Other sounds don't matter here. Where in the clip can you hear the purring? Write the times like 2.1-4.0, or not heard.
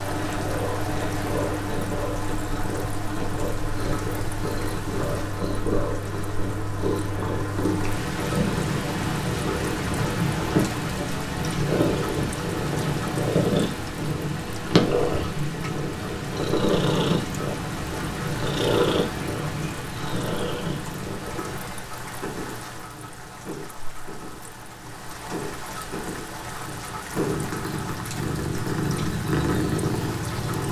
0.0-30.6.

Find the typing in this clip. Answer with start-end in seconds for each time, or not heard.
not heard.